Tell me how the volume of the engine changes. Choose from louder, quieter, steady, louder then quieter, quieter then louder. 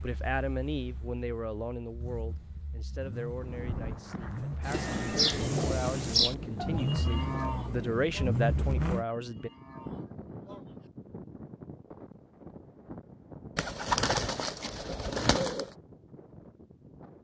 louder.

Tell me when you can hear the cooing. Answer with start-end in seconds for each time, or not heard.
4.7-6.3, 13.6-15.7.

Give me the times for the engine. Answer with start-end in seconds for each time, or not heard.
0.0-9.1.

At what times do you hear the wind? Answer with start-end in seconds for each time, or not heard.
3.4-17.2.